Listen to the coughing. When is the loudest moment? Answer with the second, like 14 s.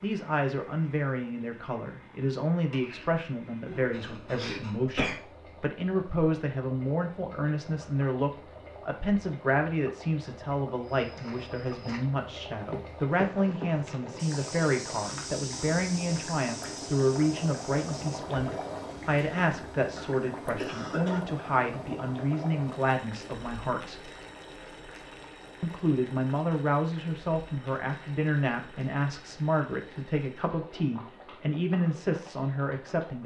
5 s.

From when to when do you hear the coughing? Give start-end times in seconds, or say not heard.
3.6-5.2, 19.3-21.2.